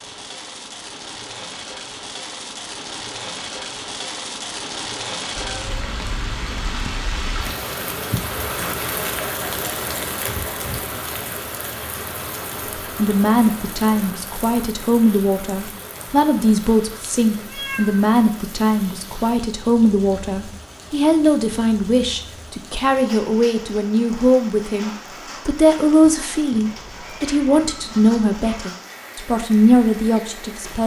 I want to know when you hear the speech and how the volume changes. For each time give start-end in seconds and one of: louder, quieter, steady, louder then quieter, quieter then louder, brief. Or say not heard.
12.9-30.8 steady.